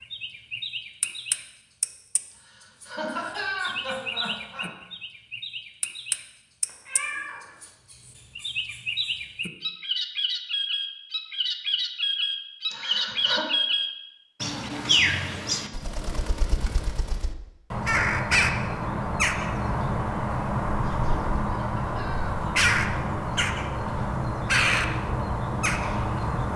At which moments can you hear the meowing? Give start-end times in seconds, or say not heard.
6.7-7.4.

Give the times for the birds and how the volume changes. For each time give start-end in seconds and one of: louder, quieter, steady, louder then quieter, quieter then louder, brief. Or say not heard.
0.0-26.5 louder.